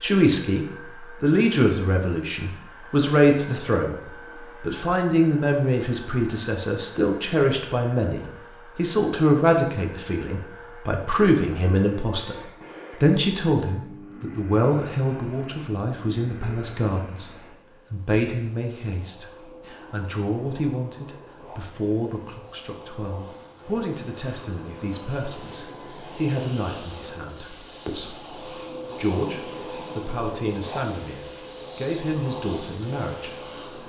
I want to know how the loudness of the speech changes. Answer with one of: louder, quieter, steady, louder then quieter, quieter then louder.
quieter.